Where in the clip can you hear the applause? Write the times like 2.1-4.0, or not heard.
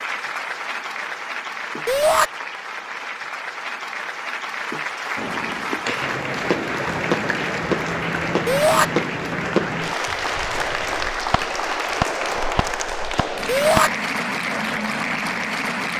0.0-15.9.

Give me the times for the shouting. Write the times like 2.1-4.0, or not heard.
1.9-2.3, 8.4-8.8, 13.4-13.9.